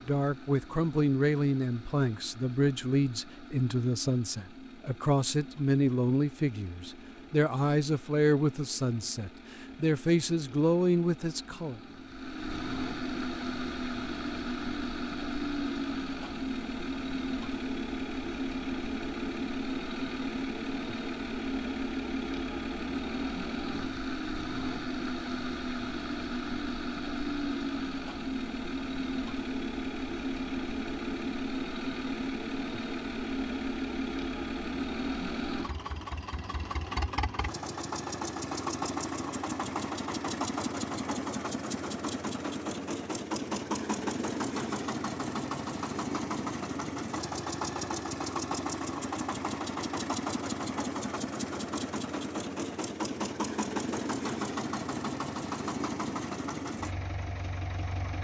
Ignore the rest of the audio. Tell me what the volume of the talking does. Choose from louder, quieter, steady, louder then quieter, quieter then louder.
steady.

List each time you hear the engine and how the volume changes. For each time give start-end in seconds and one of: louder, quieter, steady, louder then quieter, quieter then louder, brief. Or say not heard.
0.0-58.1 louder.